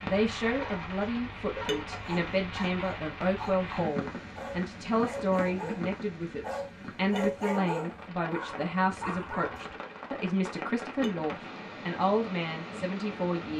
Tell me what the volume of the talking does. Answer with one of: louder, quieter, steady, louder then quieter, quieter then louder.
steady.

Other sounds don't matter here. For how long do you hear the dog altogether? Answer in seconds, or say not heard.
9 s.